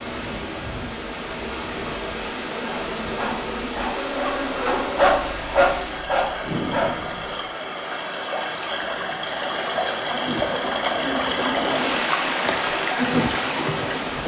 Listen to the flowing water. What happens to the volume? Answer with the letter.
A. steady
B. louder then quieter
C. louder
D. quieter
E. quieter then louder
C.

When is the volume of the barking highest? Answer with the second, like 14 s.
5 s.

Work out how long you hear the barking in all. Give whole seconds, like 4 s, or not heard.
5 s.